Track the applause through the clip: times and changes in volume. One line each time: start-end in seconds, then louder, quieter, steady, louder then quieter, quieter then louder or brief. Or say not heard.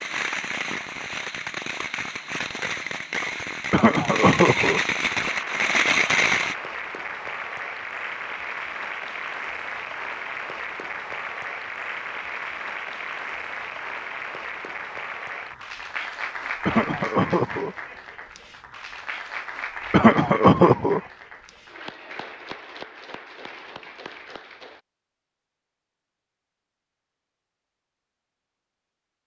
5.1-24.8 quieter.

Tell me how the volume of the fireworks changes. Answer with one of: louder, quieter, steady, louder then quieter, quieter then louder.
louder.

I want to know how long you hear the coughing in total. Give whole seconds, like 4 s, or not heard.
3 s.